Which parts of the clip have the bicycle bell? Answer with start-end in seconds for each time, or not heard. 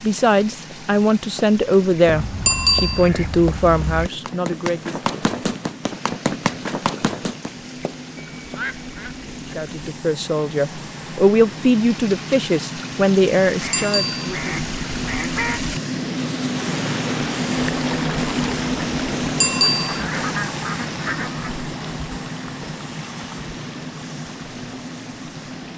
2.5-3.1, 13.7-14.3, 19.4-20.0.